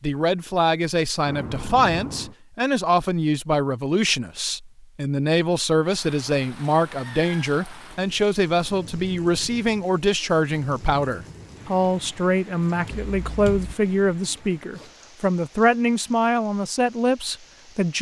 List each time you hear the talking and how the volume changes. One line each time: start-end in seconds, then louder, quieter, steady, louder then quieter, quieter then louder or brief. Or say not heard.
0.0-17.9 steady.